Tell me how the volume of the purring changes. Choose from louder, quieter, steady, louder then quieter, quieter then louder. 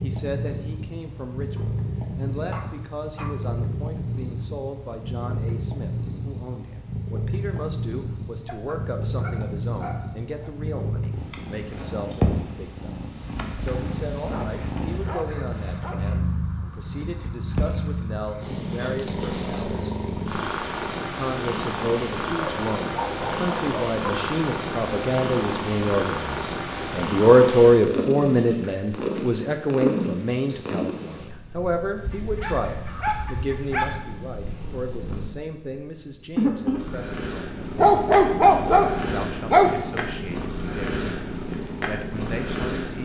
steady.